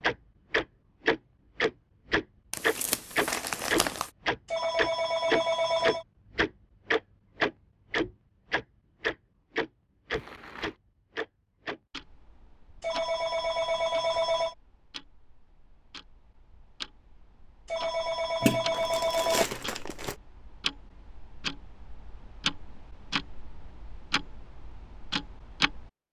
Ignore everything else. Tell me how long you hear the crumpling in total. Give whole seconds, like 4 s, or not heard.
4 s.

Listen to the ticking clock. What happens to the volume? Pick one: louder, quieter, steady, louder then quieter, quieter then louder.
quieter then louder.